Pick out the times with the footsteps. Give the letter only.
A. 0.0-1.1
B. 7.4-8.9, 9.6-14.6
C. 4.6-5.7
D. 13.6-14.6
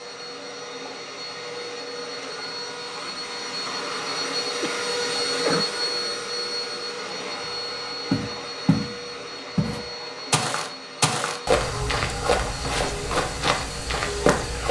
B.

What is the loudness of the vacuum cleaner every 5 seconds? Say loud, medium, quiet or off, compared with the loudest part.
loud, loud, medium.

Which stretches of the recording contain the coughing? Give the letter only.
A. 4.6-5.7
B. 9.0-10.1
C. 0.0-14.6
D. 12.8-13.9
A.